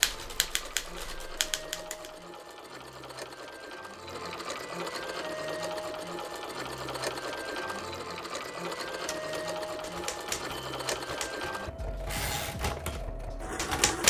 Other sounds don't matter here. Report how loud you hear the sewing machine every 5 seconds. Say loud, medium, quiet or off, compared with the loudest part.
medium, loud, loud.